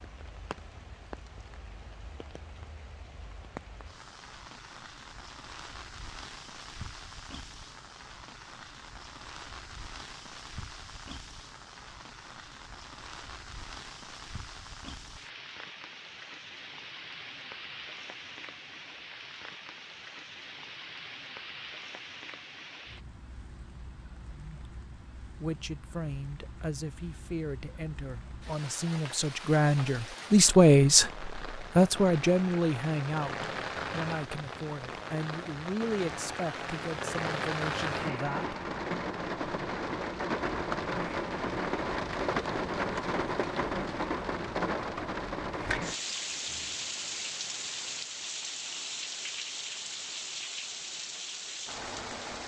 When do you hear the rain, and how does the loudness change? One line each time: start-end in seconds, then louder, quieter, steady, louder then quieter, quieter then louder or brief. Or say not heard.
0.0-52.4 louder.